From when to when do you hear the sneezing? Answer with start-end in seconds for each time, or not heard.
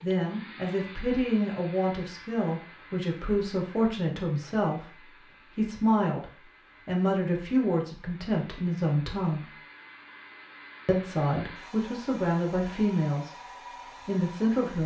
not heard.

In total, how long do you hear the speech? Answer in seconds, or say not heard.
13 s.